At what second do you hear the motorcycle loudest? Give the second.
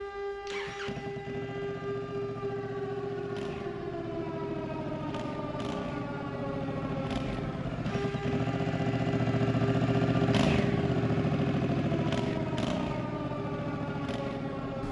10 s.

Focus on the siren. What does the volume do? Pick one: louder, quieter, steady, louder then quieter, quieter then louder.
steady.